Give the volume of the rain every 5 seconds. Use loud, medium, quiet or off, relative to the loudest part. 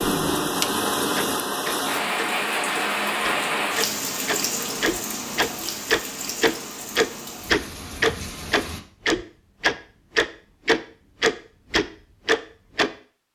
loud, medium, off.